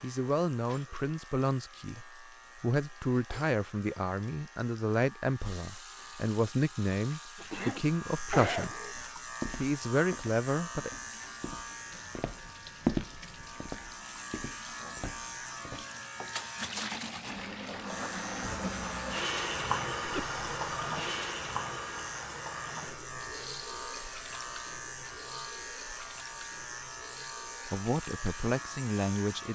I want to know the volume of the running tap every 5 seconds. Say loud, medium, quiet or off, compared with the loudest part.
quiet, quiet, quiet, loud, loud, quiet.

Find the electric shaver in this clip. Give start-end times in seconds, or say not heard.
0.0-29.4.